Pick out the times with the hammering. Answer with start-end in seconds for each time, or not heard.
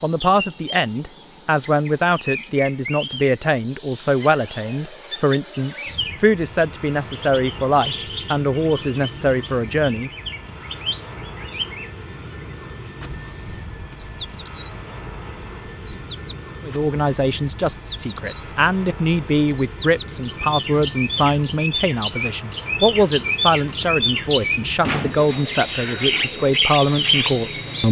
not heard.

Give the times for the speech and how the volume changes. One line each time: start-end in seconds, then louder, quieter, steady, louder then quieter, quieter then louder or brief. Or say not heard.
0.0-10.1 steady
16.6-27.8 steady.